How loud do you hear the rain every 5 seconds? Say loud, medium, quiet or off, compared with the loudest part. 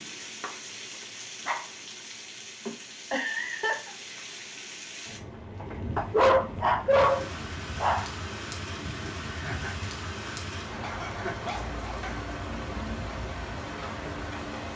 medium, loud, loud.